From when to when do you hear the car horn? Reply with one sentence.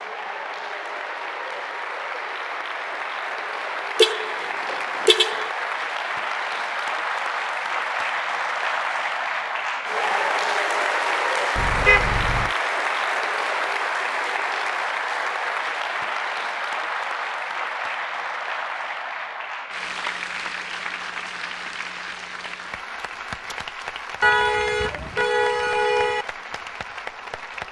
The car horn can be heard from 4.0 to 5.5 s, from 11.6 to 12.5 s and from 24.2 to 26.2 s.